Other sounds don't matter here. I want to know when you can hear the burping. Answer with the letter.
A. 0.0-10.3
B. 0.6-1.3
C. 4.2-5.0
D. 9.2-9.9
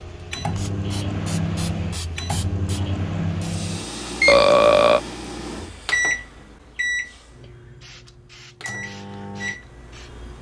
C.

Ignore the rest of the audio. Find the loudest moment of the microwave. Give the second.
4 s.